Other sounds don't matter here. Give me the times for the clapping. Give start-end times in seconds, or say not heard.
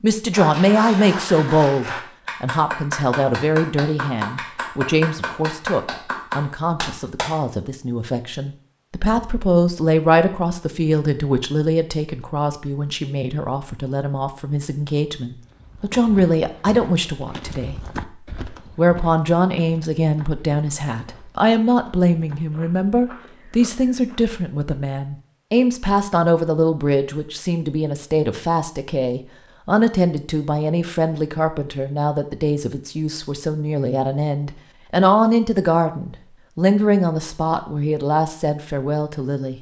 0.3-7.3.